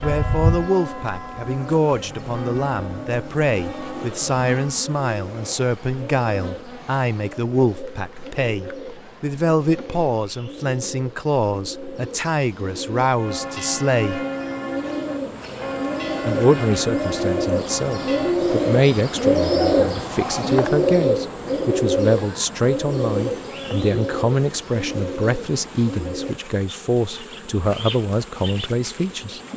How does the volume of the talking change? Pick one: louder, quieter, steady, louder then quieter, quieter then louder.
steady.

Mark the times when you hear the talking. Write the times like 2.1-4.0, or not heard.
0.0-14.2, 16.2-29.4.